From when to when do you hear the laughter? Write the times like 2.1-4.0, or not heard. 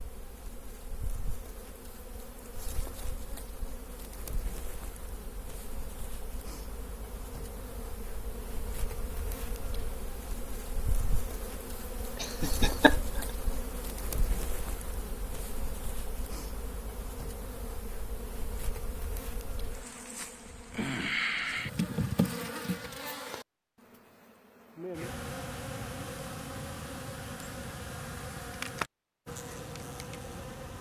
12.2-13.2.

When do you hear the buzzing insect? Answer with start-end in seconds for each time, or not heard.
0.0-30.7.